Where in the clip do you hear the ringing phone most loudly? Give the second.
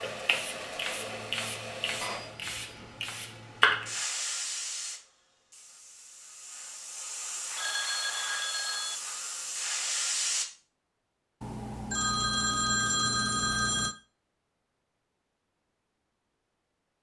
13 s.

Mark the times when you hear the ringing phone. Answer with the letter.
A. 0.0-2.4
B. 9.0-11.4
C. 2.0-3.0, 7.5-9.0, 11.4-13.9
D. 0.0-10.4
C.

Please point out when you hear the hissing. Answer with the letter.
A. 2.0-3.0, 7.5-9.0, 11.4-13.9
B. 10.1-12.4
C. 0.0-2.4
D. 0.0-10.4
D.